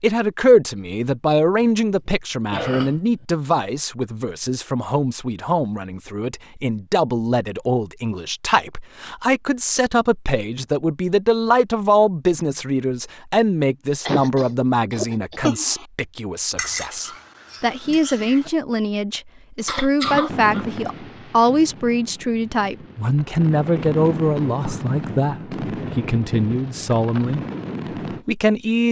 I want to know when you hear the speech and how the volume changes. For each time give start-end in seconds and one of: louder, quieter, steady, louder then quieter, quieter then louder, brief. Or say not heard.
0.0-27.4 steady
28.1-28.8 brief.